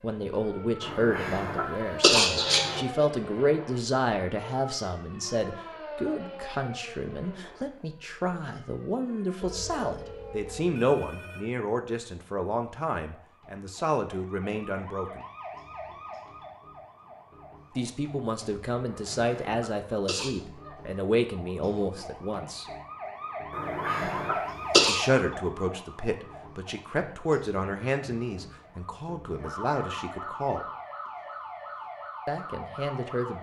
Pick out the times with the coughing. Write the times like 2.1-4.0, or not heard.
0.8-2.8, 18.9-20.3, 23.5-25.0.